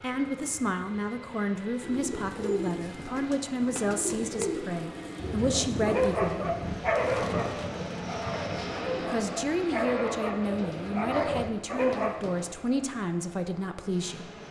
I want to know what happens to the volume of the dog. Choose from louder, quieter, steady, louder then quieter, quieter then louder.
quieter then louder.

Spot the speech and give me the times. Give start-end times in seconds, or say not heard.
0.0-6.5, 9.0-14.3.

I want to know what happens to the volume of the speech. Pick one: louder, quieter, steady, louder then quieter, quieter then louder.
steady.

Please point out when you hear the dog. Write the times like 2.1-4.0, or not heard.
5.4-12.3.